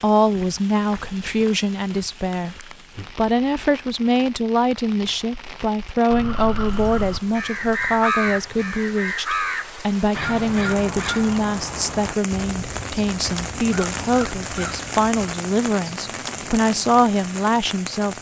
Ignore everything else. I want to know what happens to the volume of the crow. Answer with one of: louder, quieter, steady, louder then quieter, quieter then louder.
quieter.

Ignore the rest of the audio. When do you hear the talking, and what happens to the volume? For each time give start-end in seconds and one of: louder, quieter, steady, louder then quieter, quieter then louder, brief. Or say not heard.
0.0-18.1 steady.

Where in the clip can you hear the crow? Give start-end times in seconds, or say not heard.
6.1-15.3.